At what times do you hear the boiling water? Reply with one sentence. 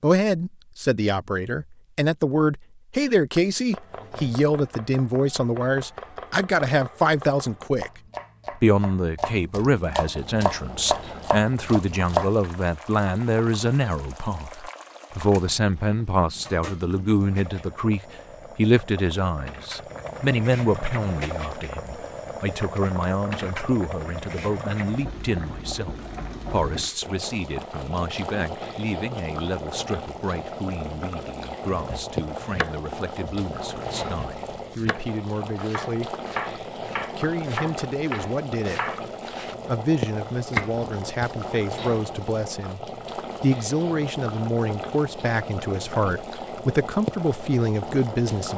You can hear the boiling water from 10.2 to 48.5 s.